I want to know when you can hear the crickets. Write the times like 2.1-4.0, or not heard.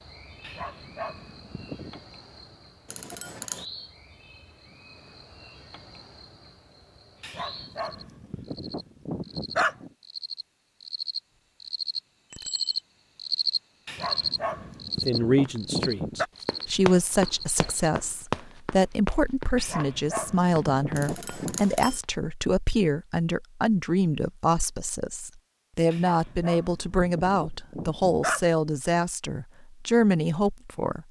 0.0-17.6.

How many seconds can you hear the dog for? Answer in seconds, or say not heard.
11 s.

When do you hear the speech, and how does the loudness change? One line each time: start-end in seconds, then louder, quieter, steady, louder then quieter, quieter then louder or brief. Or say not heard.
15.1-31.0 steady.